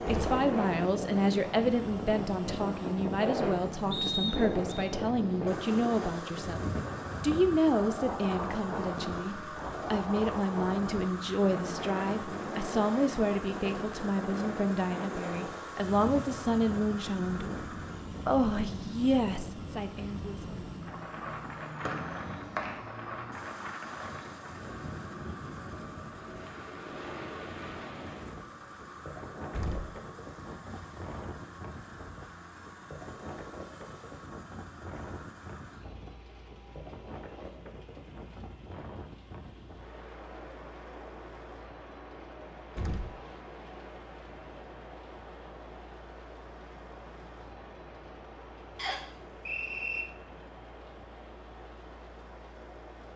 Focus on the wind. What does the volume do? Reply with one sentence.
The volume of the wind goes down.